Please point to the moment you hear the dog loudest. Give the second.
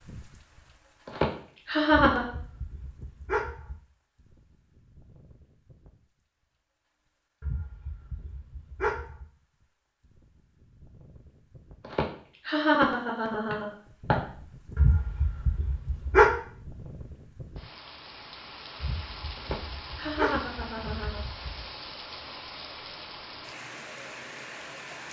16 s.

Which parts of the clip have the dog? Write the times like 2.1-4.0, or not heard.
1.9-3.8, 7.4-9.2, 14.8-16.4, 18.8-21.6.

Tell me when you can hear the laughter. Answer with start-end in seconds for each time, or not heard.
1.1-2.3, 11.8-14.2, 19.4-21.2.